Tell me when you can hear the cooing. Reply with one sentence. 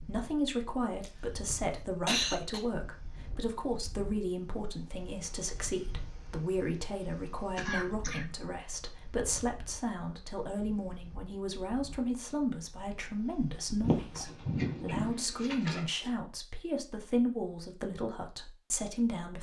The cooing can be heard from 13.8 to 15.8 s.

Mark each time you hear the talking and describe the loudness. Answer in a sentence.
The talking can be heard from 0.0 to 19.3 s, at a steady volume.